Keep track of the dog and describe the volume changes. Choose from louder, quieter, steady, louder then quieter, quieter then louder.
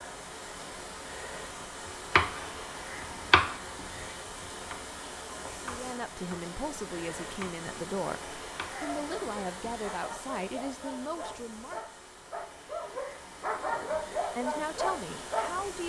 louder.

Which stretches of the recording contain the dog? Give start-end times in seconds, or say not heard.
8.7-15.5.